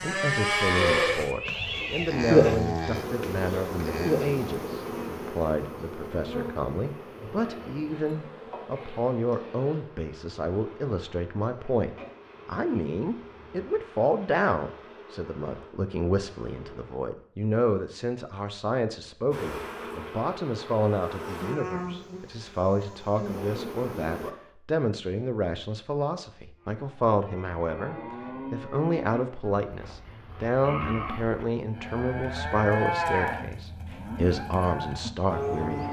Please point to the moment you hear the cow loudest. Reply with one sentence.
The volume of the cow peaks at 2 seconds.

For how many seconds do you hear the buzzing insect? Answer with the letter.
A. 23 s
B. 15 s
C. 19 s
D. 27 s
C.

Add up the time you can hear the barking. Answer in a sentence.
You can't hear the barking here.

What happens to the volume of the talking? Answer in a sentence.
The loudness of the talking stays about the same.